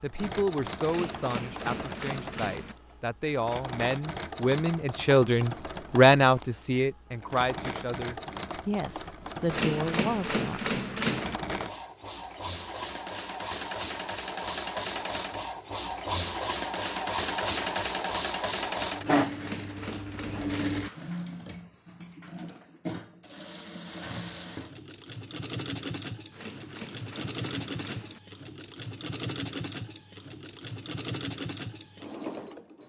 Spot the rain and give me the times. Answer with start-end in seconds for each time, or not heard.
not heard.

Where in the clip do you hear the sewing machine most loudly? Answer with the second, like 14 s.
19 s.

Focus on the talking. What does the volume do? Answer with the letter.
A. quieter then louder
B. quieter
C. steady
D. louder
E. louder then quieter
E.